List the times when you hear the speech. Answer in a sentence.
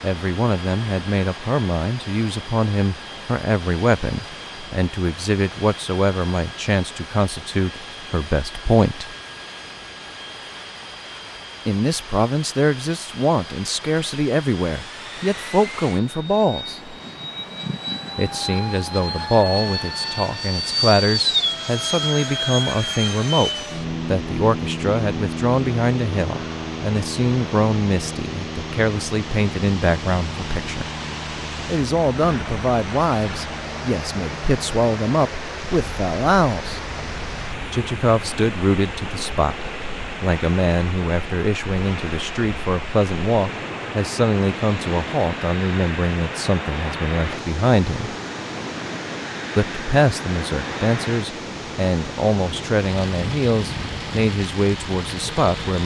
The speech can be heard from 0.0 to 9.1 s, from 11.7 to 16.9 s, from 18.1 to 30.9 s, from 31.6 to 36.8 s, from 37.7 to 48.1 s and from 49.5 to 55.8 s.